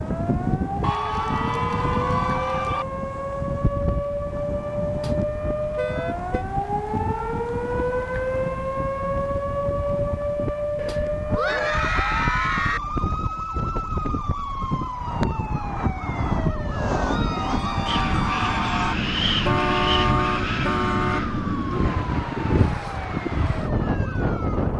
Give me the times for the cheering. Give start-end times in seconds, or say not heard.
0.8-2.9, 10.8-12.8, 16.9-18.9.